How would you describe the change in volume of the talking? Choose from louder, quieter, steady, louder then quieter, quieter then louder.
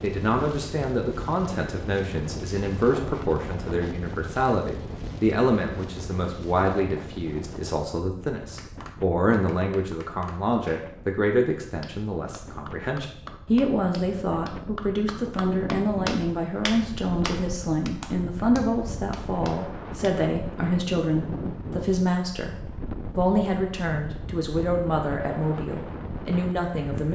steady.